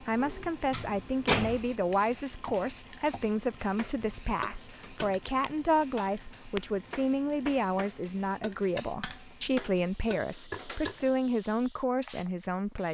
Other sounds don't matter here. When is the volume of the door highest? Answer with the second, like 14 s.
1 s.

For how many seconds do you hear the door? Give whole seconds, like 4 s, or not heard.
3 s.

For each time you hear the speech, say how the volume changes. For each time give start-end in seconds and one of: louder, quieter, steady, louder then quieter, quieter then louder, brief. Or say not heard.
0.0-12.8 steady.